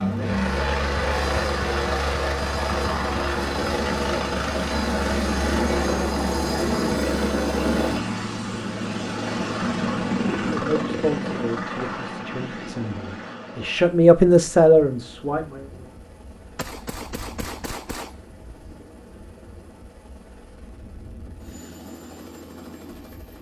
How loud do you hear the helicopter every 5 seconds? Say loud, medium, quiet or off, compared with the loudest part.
loud, loud, medium, quiet, quiet.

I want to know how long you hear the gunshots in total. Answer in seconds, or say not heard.
3 s.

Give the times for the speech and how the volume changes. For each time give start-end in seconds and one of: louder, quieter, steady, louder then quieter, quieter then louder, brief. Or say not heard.
10.4-15.7 quieter then louder.